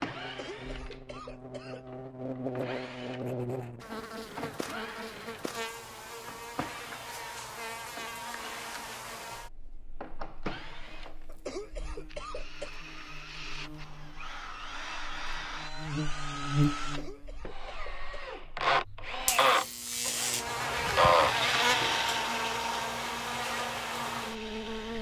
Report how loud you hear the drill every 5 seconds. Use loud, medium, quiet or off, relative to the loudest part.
quiet, quiet, quiet, loud, loud.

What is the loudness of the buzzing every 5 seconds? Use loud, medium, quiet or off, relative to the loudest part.
medium, medium, quiet, loud, loud.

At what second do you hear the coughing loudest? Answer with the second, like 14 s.
12 s.